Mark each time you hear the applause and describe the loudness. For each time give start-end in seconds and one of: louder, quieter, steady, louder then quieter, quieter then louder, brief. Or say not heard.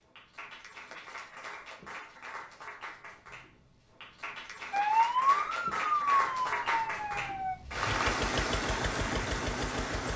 0.0-10.1 louder.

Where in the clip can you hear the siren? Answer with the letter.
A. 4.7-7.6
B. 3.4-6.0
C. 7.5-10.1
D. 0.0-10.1
A.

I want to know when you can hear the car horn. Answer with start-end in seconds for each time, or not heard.
not heard.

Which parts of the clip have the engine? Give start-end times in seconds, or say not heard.
7.5-10.1.